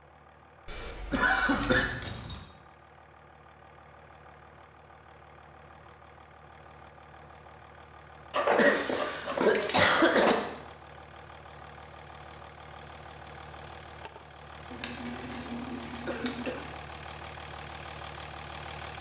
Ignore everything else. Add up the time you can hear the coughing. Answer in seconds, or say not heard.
4 s.